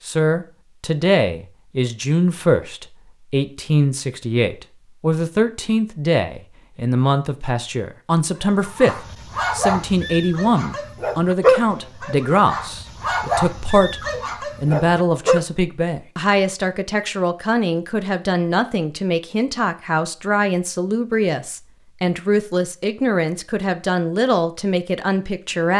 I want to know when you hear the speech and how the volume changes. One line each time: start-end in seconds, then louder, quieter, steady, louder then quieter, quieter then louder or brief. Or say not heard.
0.1-25.7 steady.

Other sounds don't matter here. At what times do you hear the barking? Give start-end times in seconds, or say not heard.
8.4-15.4.